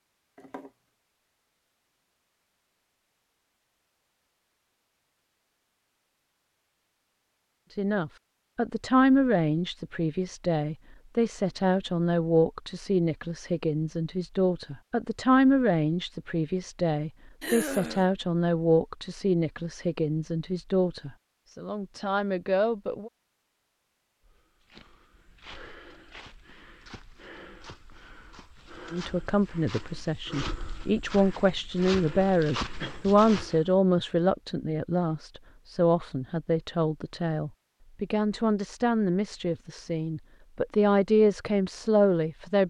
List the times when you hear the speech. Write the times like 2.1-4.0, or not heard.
7.8-23.1, 28.9-42.6.